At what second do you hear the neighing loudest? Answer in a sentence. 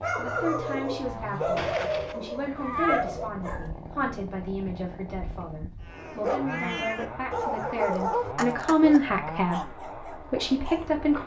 The volume of the neighing peaks at 3 seconds.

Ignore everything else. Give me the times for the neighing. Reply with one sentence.
The neighing can be heard from 1.6 to 3.0 s.